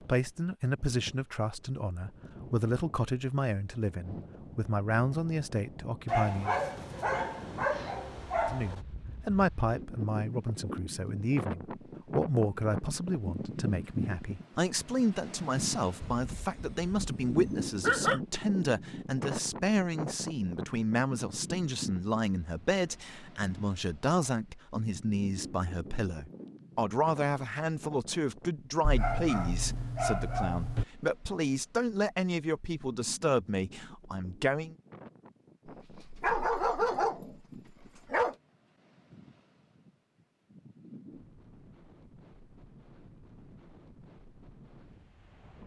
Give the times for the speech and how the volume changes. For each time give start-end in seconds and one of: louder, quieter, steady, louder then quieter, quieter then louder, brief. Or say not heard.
0.0-6.6 steady
8.5-34.8 steady.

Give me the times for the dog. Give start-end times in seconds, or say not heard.
6.0-8.8, 16.0-18.2, 28.8-30.9, 35.9-38.4.